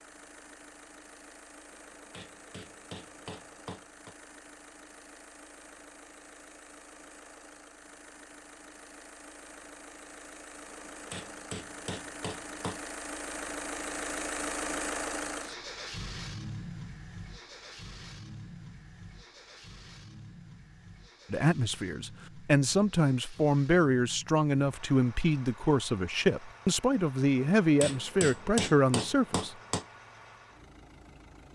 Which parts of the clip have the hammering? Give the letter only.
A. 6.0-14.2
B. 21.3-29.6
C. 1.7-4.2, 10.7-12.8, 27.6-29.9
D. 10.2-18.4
C.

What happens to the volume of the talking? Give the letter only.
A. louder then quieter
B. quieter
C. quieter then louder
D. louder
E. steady
E.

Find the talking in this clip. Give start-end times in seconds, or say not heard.
21.3-29.6.